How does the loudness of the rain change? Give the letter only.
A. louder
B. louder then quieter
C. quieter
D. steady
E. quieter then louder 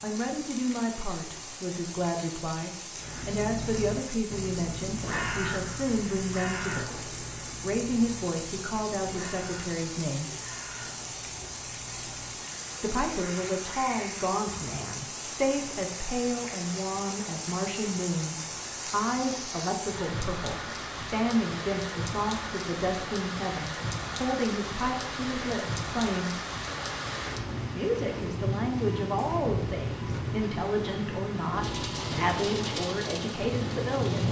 A.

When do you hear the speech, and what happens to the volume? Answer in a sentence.
You can hear the speech from 0.0 to 6.9 s, at a steady volume; briefly from 7.6 to 10.3 s; from 12.8 to 26.4 s, at a steady volume; and from 27.8 to 34.2 s, at a steady volume.